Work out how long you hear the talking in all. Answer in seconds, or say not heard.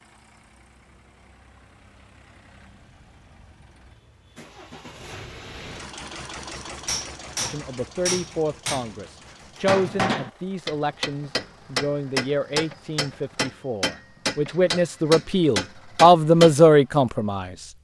10 s.